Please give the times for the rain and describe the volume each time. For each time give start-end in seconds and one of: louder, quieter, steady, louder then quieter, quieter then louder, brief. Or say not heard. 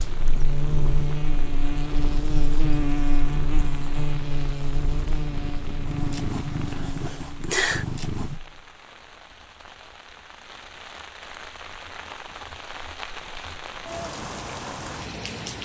0.0-15.6 louder.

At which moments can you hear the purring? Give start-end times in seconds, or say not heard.
0.0-8.4.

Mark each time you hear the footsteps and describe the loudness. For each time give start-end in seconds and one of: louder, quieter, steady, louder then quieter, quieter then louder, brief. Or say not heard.
not heard.